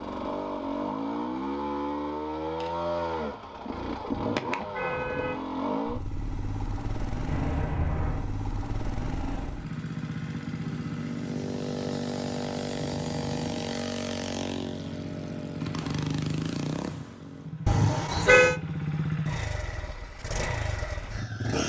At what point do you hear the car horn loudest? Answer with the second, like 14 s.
18 s.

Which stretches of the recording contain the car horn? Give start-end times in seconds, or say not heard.
4.1-5.4, 7.2-8.3, 17.6-18.6.